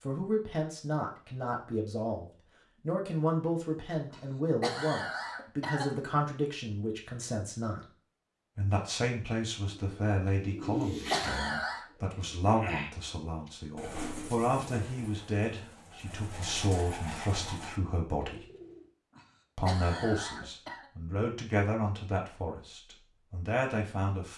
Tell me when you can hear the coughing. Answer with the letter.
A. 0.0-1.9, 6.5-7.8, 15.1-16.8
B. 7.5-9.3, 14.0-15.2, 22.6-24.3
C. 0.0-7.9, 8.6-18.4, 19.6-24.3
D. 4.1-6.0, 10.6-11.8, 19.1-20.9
D.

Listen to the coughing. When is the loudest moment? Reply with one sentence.
The volume of the coughing peaks at 11 seconds.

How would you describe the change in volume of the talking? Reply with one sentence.
The loudness of the talking stays about the same.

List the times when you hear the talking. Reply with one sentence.
You can hear the talking from 0.0 to 7.9 s, from 8.6 to 18.4 s and from 19.6 to 24.3 s.